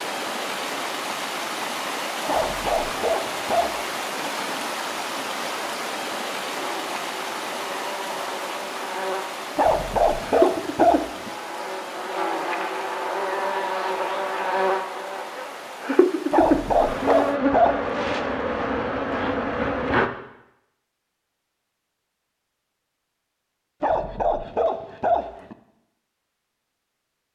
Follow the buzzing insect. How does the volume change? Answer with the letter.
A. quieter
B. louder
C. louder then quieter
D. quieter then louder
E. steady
B.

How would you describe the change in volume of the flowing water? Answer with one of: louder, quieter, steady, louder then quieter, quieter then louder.
quieter.